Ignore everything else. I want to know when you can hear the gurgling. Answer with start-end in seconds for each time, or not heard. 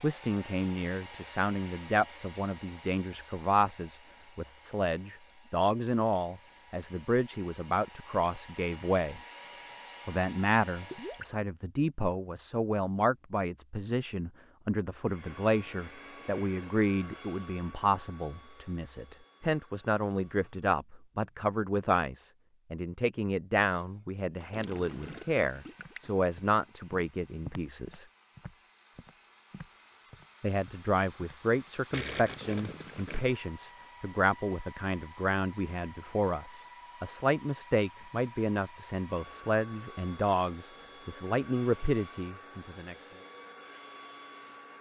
10.9-11.3, 24.5-26.1, 31.9-33.2.